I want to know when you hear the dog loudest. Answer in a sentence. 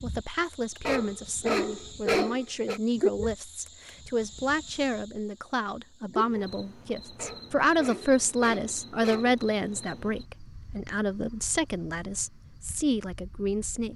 The loudest moment of the dog is at 2 seconds.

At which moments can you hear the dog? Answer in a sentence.
You can hear the dog from 0.8 to 2.8 s and from 7.2 to 9.3 s.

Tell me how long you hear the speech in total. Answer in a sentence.
You can hear the speech for 14 seconds altogether.